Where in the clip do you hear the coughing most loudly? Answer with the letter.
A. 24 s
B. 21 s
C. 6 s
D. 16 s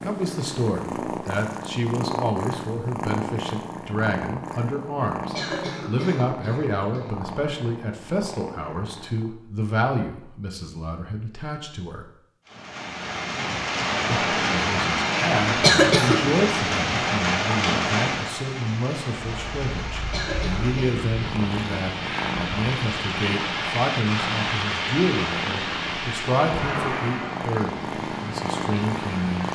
D.